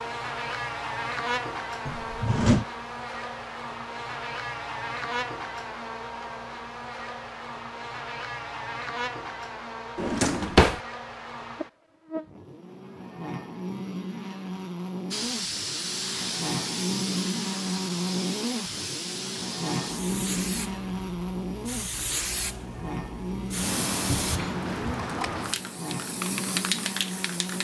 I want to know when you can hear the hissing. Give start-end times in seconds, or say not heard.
15.1-27.6.